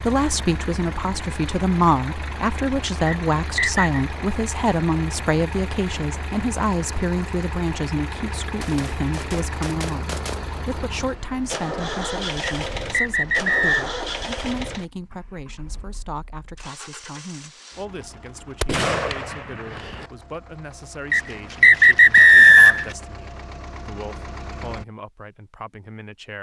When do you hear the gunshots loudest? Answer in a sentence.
The loudest moment of the gunshots is at 19 seconds.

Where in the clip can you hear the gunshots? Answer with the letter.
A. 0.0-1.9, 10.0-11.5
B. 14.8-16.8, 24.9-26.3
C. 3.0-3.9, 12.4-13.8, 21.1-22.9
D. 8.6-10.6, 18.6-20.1
D.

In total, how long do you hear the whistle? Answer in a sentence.
You can hear the whistle for 4 seconds altogether.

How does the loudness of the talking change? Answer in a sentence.
The loudness of the talking goes down.